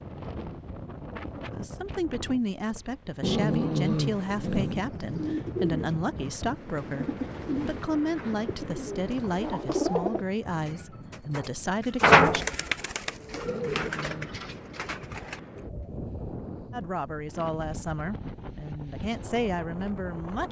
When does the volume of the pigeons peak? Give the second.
12 s.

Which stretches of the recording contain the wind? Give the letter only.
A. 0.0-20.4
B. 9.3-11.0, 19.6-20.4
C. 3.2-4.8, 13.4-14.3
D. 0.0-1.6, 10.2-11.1
A.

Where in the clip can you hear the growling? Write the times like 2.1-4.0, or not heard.
3.2-4.8, 13.4-14.3.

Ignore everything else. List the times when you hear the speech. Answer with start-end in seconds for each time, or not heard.
1.5-12.4, 16.7-20.4.